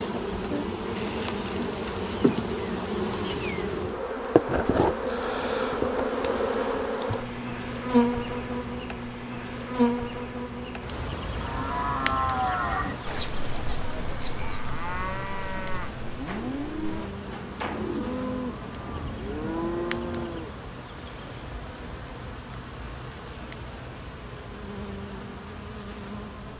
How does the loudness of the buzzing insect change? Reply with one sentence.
The loudness of the buzzing insect goes down.